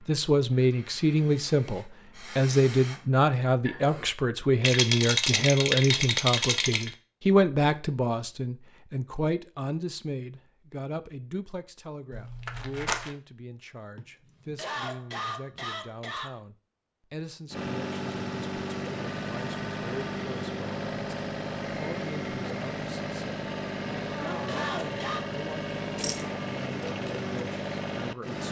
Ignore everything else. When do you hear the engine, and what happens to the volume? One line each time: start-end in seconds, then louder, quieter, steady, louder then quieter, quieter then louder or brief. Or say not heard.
17.5-28.4 steady.